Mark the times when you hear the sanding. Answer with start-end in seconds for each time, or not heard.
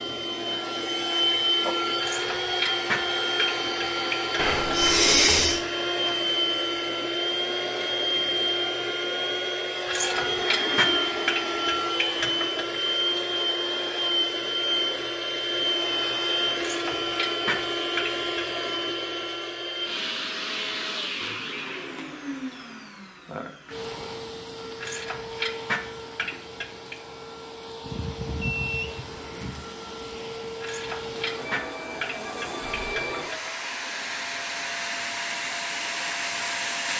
not heard.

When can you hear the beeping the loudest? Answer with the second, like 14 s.
5 s.